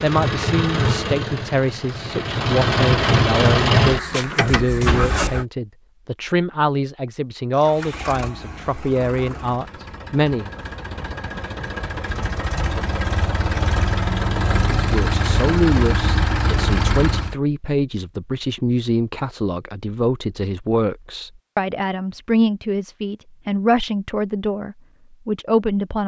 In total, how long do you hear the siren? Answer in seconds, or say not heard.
not heard.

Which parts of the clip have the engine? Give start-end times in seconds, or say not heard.
0.0-5.5, 7.5-17.4.